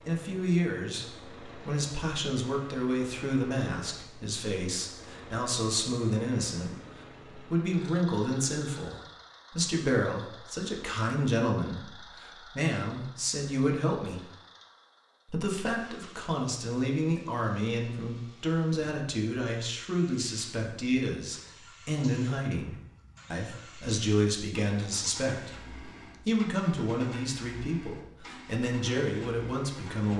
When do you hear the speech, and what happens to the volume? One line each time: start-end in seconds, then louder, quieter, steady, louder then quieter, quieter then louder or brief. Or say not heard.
0.1-14.2 steady
15.2-30.1 steady.